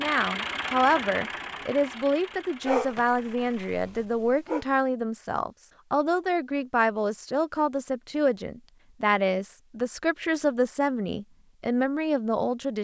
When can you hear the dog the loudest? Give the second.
3 s.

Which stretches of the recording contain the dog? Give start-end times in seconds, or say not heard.
2.6-4.7.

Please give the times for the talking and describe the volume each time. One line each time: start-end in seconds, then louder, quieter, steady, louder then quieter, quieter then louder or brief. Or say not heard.
0.0-12.8 steady.